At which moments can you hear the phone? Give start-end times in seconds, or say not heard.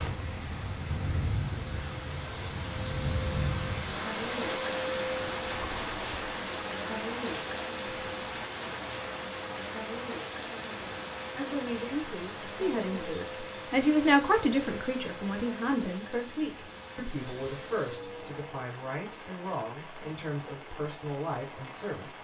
not heard.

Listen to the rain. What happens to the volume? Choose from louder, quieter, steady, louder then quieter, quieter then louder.
quieter.